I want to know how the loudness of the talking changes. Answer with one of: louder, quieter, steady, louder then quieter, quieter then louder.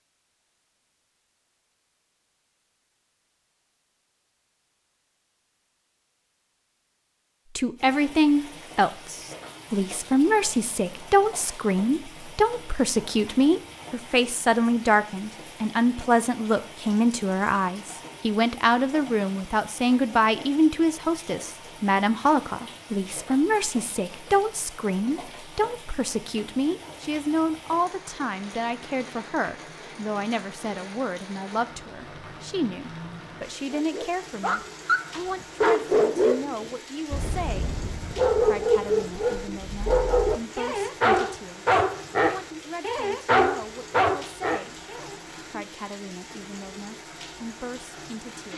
quieter.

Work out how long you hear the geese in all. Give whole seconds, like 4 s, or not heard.
not heard.